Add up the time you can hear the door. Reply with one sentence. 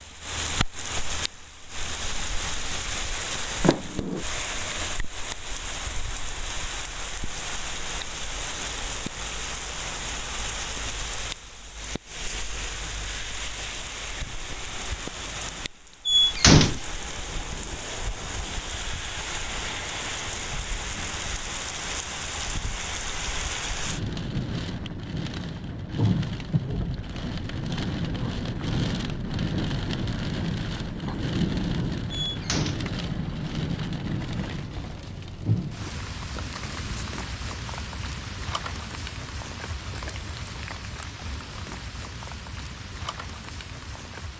The door can be heard for 2 seconds in total.